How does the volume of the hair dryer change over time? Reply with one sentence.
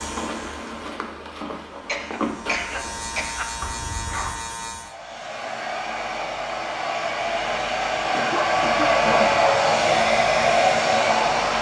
The volume of the hair dryer goes up.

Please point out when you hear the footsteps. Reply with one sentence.
You can hear the footsteps from 0.0 to 4.3 s.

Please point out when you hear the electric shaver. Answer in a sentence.
You can hear the electric shaver from 0.0 to 5.0 s.